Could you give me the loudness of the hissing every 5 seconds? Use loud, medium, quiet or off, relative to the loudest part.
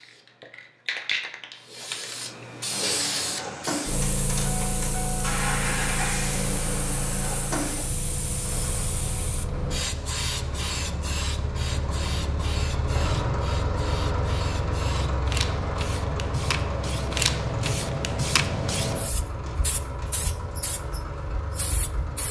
loud, loud, medium, loud, medium.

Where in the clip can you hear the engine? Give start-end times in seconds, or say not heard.
2.7-22.2.